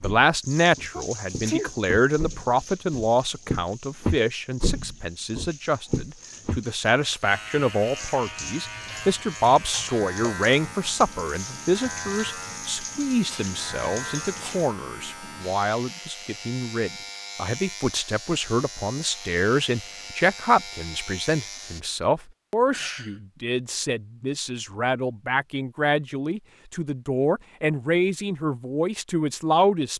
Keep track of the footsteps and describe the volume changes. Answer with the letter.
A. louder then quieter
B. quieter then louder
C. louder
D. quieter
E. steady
C.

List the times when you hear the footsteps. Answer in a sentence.
You can hear the footsteps from 0.0 to 6.6 s.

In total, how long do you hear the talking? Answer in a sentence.
The talking can be heard for 30 seconds in total.